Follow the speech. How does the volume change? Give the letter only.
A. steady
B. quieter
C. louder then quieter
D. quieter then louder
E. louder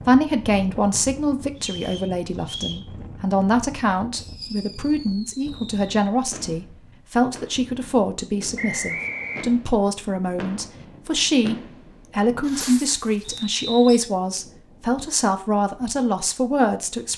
A.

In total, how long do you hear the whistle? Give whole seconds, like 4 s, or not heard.
3 s.